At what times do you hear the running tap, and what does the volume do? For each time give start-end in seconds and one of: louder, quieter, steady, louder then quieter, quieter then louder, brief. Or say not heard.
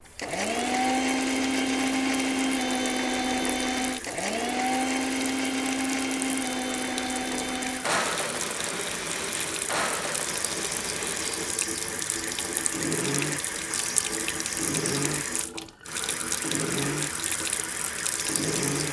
0.0-18.8 louder.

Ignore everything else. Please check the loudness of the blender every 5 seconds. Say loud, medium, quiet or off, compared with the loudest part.
loud, loud, medium, medium.